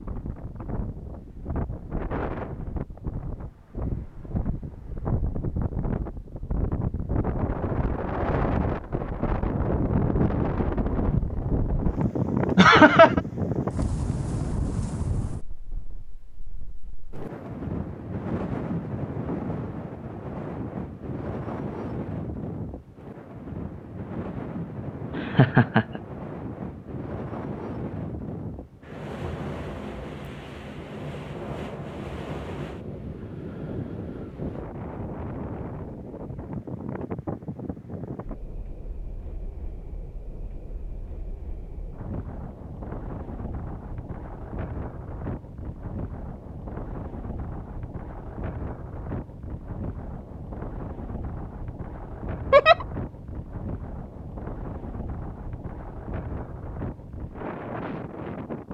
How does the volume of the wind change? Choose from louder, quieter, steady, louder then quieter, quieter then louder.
quieter.